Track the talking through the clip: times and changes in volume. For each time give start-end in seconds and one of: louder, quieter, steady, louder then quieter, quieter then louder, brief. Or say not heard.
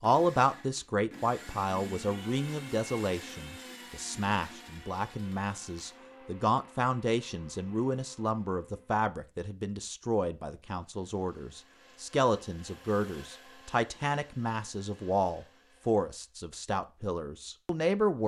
0.0-18.2 steady.